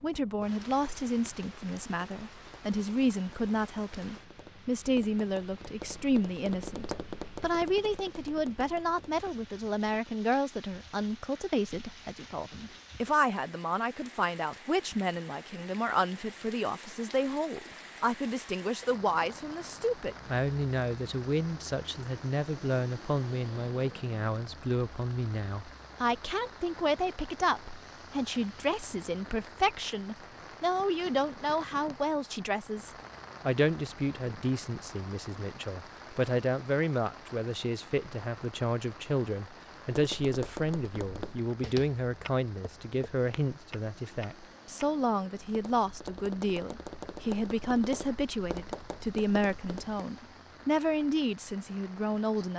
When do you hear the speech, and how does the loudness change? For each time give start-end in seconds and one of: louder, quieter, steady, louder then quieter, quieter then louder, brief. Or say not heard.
0.0-52.5 steady.